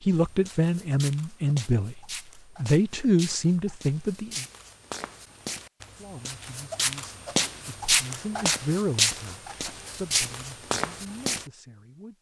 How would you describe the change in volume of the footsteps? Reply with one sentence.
The volume of the footsteps goes up.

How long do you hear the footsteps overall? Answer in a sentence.
You can hear the footsteps for 11 seconds altogether.